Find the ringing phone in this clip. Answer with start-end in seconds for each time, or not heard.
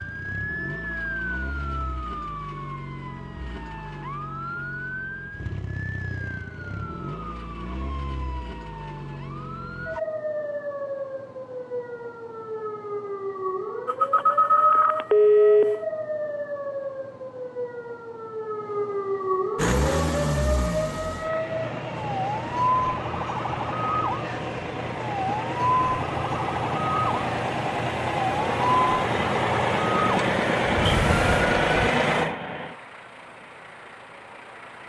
13.8-15.8, 30.8-31.5.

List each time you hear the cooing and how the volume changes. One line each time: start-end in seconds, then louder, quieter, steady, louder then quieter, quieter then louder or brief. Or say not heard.
not heard.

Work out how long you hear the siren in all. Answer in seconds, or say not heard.
32 s.